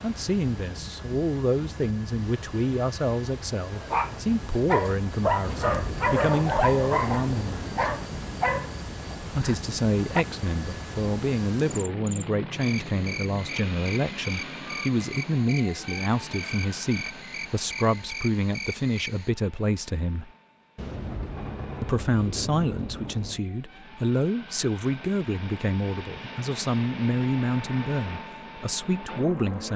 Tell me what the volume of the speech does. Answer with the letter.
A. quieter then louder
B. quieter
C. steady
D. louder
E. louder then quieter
C.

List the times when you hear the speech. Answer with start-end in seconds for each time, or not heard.
0.0-7.7, 9.3-20.3, 21.8-29.7.